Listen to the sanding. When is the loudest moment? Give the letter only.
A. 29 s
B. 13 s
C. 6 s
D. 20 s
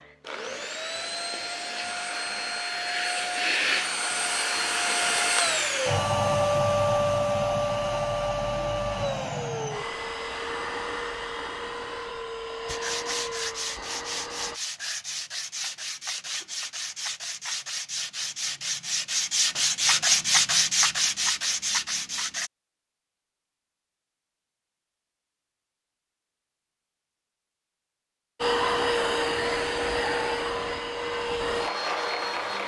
D.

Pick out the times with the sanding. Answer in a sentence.
The sanding can be heard from 12.7 to 22.5 s.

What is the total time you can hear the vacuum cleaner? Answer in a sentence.
The vacuum cleaner can be heard for 19 seconds in total.